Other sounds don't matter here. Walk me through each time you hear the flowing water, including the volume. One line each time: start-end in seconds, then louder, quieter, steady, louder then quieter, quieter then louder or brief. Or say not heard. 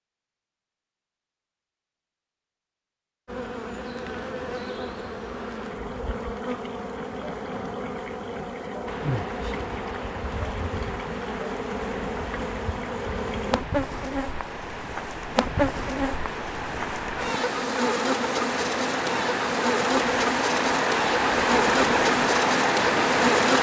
8.8-23.5 louder.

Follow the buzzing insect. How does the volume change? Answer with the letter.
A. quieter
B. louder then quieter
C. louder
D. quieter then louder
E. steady
C.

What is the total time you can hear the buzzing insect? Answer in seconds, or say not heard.
20 s.